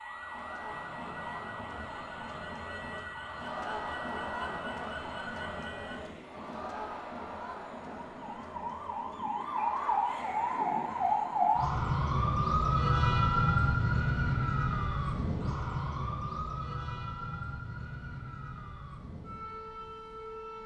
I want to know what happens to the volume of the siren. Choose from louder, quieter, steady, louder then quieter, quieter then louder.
louder then quieter.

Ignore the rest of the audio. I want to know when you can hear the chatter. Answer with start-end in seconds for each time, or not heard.
0.0-11.7.